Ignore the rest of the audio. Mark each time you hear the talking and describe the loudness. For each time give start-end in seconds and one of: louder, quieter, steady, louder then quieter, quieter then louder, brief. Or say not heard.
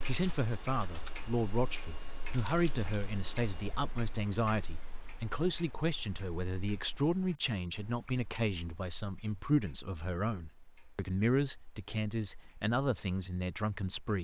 0.0-14.2 steady.